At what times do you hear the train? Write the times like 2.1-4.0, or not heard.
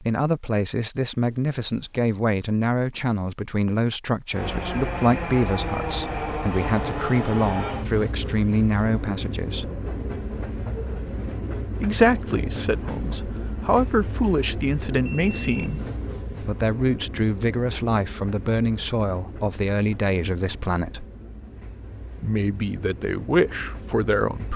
4.3-24.5.